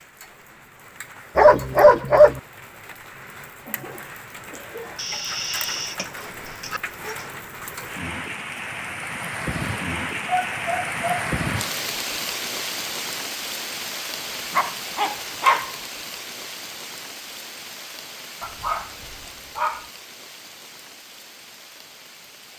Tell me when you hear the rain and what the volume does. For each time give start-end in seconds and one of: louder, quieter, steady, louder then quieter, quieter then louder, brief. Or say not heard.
0.0-22.5 louder then quieter.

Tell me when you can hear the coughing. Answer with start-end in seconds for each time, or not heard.
3.6-5.0.